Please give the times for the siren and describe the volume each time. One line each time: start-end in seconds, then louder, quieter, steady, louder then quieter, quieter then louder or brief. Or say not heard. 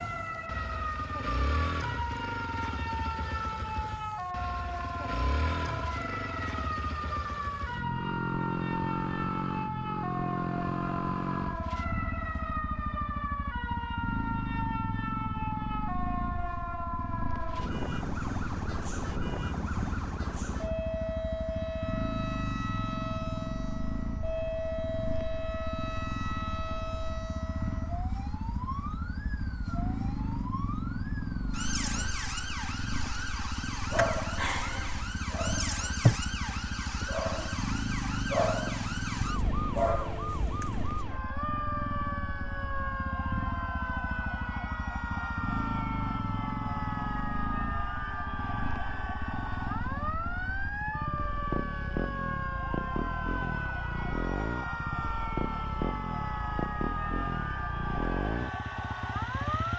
0.0-59.7 steady.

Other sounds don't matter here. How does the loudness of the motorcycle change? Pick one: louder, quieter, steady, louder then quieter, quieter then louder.
steady.